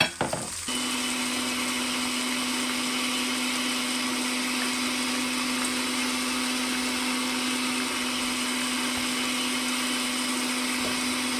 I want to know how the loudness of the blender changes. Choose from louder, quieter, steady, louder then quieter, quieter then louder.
steady.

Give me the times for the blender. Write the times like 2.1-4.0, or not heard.
0.0-11.3.